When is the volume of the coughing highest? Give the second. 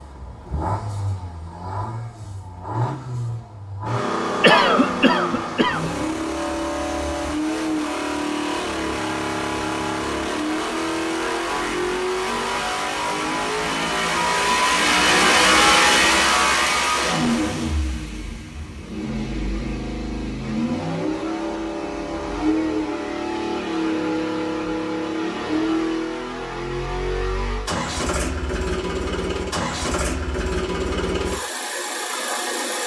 5 s.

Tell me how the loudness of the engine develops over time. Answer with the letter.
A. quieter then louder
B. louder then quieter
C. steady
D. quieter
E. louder
B.